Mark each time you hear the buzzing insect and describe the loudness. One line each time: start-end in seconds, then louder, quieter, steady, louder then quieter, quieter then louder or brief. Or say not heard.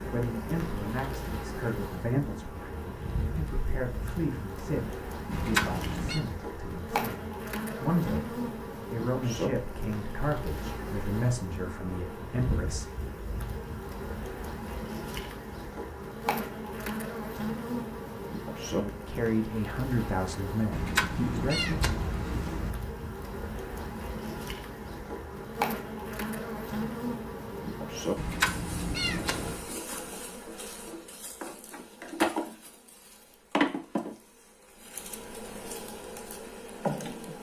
0.0-37.3 steady.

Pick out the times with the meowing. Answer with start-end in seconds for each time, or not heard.
5.3-6.2, 20.7-22.8, 28.1-29.6.